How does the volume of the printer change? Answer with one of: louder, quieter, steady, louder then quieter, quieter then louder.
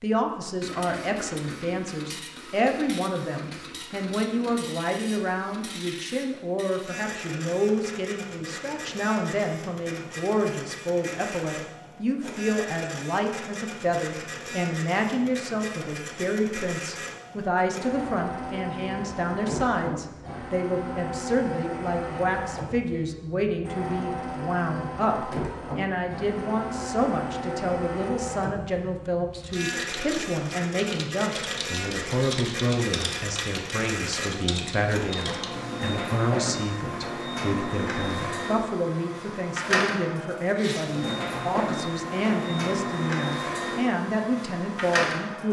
louder.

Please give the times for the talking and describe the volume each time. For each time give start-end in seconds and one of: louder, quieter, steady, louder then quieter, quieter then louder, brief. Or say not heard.
0.0-45.4 steady.